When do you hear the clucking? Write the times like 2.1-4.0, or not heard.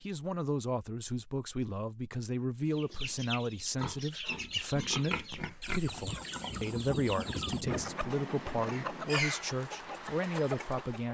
2.7-11.1.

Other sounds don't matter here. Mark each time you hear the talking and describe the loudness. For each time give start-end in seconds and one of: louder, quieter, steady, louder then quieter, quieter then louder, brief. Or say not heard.
0.0-11.1 steady.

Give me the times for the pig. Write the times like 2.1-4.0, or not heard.
3.8-9.6.